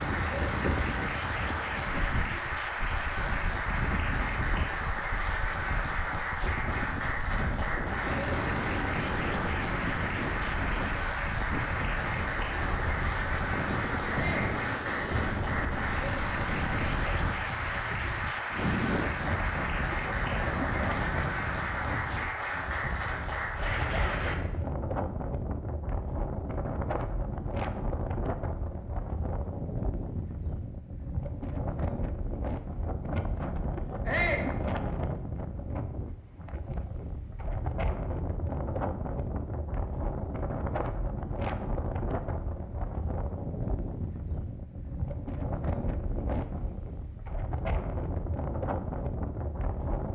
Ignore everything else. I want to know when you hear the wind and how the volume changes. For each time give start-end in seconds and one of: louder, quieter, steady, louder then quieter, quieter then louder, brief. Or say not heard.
0.0-50.1 steady.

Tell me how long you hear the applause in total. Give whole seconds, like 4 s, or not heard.
24 s.